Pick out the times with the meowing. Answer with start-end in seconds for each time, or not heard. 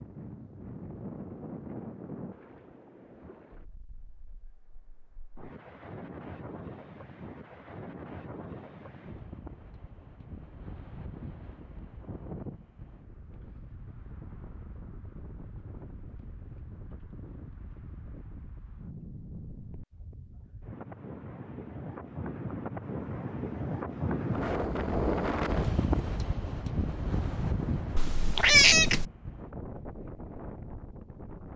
27.9-29.1.